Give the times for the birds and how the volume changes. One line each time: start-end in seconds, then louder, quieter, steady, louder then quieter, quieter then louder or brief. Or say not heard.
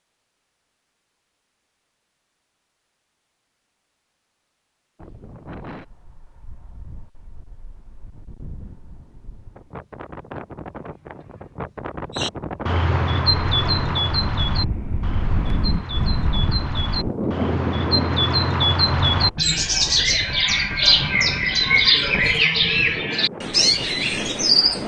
12.2-24.8 quieter then louder.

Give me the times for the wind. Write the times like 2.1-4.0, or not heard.
5.0-24.8.